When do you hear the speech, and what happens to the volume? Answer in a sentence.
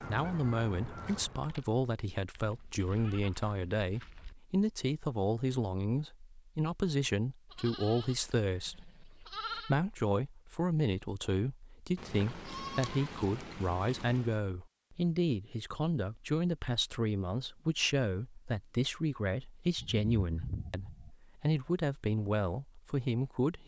The speech can be heard from 0.0 to 23.6 s, at a steady volume.